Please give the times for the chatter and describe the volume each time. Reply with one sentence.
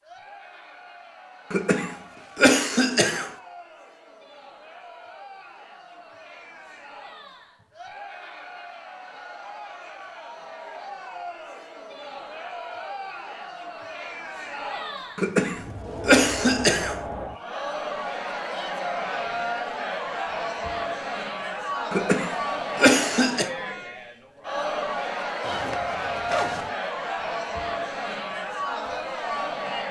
The chatter can be heard from 0.0 to 29.8 s, getting louder.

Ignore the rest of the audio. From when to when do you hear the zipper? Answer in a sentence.
The zipper can be heard from 25.4 to 26.7 s.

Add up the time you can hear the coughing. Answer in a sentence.
The coughing can be heard for 5 seconds in total.